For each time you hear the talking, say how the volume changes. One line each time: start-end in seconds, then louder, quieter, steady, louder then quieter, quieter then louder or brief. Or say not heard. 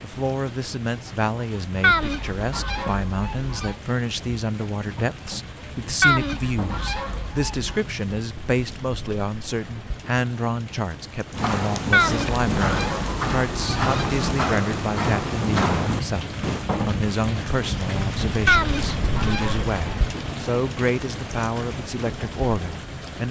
0.0-23.2 steady.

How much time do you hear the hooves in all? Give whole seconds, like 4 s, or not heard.
5 s.